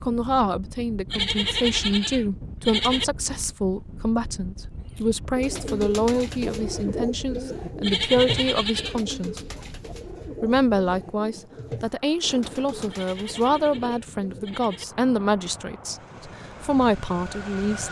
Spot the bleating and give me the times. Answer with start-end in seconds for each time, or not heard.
1.1-3.0, 7.8-9.0, 12.9-14.8.